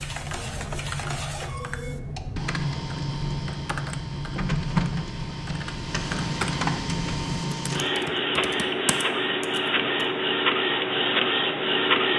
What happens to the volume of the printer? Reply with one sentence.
The volume of the printer goes up.